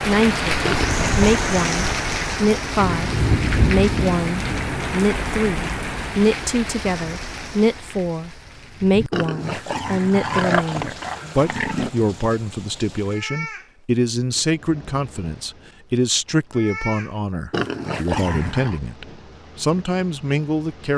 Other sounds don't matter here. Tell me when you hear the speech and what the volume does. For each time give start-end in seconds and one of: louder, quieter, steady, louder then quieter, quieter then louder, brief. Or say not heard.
0.1-20.9 steady.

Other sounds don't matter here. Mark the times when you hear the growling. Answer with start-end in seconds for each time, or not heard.
0.6-1.4, 9.1-11.9, 17.5-18.8.